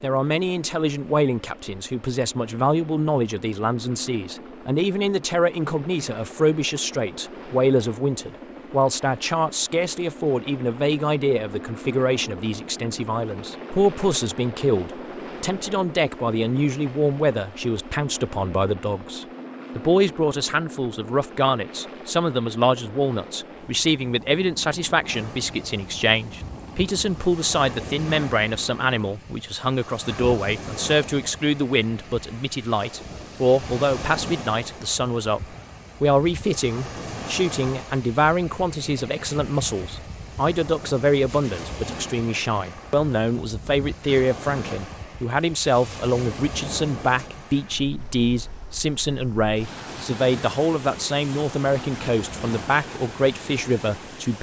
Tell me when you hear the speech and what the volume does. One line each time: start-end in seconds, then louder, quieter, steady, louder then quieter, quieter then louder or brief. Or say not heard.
0.0-54.3 steady.